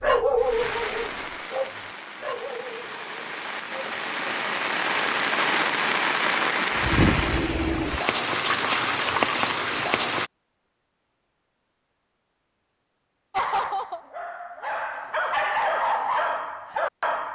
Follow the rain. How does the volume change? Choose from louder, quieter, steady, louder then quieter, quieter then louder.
louder.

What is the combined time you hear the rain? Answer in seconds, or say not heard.
10 s.